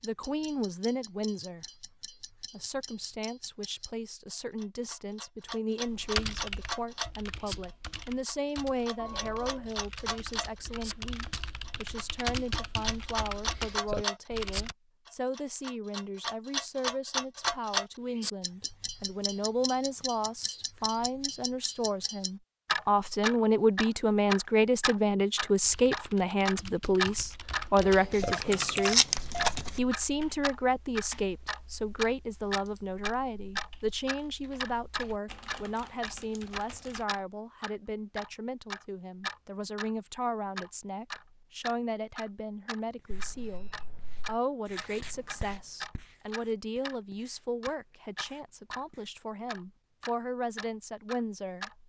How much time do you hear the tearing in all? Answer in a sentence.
The tearing can be heard for 2 seconds in total.